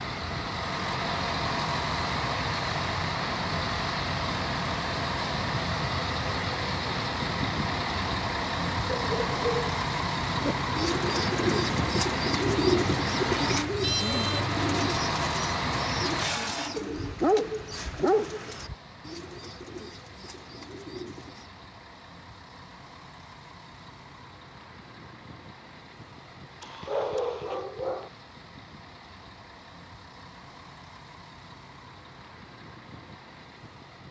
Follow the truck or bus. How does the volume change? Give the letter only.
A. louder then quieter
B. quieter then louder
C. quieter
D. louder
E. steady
C.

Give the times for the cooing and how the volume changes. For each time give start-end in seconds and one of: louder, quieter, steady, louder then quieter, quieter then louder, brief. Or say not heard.
10.4-21.5 quieter.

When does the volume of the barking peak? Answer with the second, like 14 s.
17 s.